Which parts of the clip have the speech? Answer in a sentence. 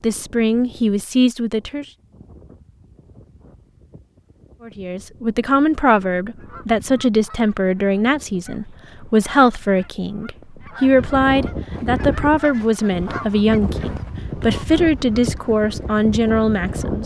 You can hear the speech from 0.0 to 1.9 s and from 4.7 to 17.0 s.